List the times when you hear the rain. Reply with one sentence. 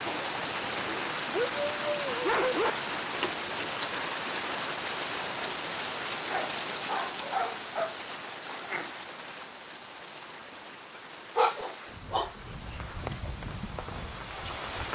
You can hear the rain from 0.0 to 14.9 s.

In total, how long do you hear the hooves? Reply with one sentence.
The hooves can't be heard in this clip.